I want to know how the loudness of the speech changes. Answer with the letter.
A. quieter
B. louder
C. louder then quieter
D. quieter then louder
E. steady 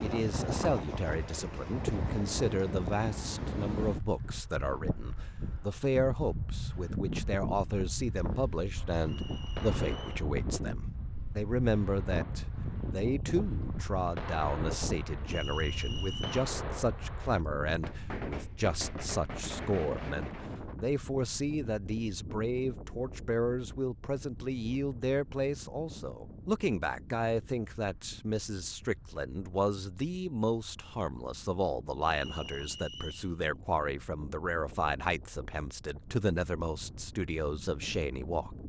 E.